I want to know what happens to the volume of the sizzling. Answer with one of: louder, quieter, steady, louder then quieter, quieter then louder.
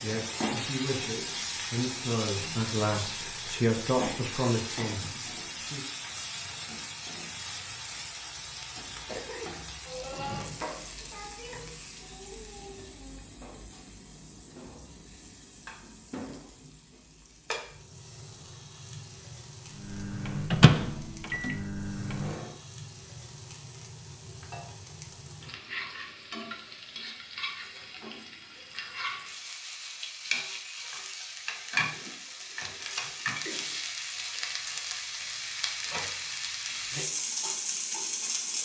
quieter then louder.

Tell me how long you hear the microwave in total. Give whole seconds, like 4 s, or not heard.
3 s.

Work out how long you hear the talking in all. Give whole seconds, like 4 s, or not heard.
6 s.